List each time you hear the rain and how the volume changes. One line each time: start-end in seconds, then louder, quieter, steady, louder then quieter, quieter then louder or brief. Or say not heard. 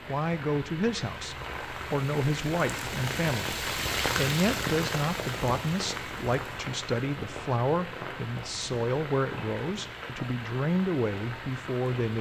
0.0-12.1 louder then quieter.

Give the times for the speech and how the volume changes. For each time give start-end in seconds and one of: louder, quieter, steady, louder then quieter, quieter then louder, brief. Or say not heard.
0.1-12.1 steady.